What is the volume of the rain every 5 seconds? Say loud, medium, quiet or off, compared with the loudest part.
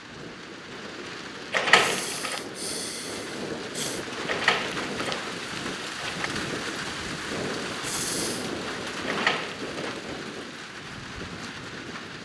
loud, loud, medium.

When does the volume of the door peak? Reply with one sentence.
The loudest moment of the door is at 2 seconds.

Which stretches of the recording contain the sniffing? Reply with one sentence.
You can hear the sniffing from 1.7 to 4.0 s and from 7.8 to 8.5 s.